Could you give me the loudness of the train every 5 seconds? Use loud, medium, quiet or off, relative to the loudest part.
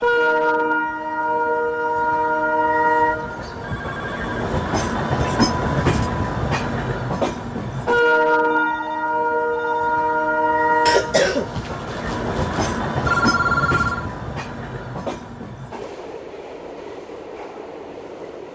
loud, loud, loud, quiet.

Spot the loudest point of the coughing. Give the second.
11 s.